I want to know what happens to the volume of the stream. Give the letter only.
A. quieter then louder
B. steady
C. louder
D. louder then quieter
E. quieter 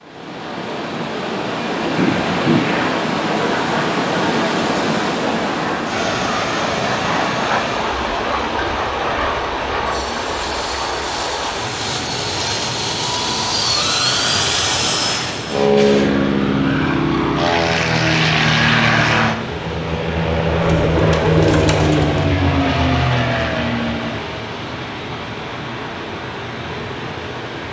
E.